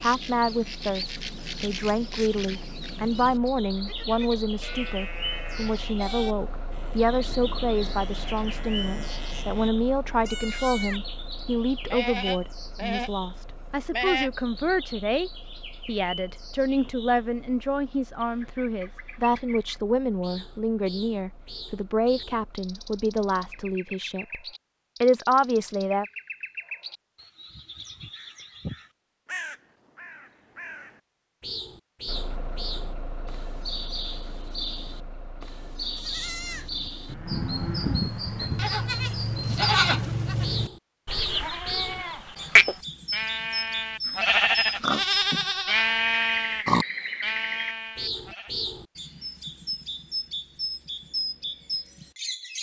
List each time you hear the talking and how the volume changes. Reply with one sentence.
You can hear the talking from 0.0 to 24.4 s, at a steady volume; and briefly from 25.0 to 26.1 s.